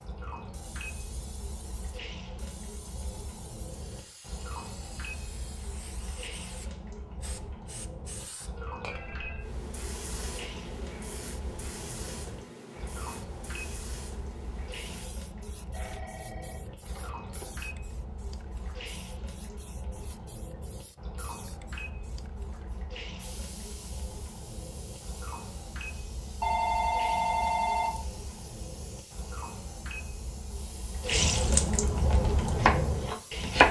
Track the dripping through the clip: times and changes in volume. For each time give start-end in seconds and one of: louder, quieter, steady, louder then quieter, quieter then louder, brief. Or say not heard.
0.0-33.6 louder.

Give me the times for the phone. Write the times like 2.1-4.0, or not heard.
8.5-9.6, 15.7-17.6, 26.4-28.1.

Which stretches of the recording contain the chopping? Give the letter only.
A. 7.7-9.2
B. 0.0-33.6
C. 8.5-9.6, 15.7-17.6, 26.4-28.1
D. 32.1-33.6
D.